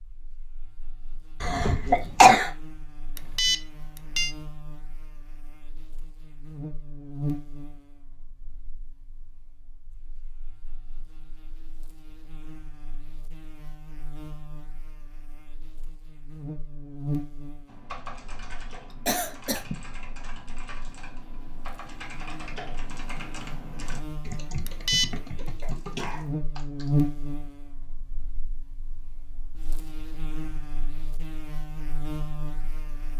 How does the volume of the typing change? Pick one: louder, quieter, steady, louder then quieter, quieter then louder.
louder.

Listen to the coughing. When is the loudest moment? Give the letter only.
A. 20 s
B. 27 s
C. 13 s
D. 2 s
D.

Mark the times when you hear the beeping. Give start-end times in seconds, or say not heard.
3.1-4.3, 24.6-25.1.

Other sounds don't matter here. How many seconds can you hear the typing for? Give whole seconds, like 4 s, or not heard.
9 s.